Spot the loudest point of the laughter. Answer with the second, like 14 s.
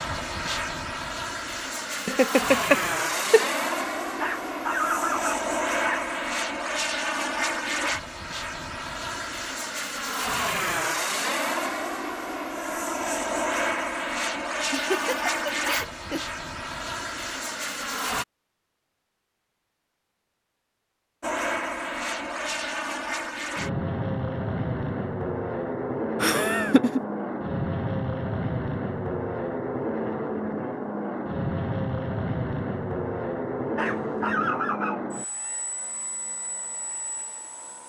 3 s.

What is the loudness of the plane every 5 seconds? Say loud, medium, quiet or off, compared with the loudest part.
loud, loud, loud, loud, loud, loud, loud, quiet.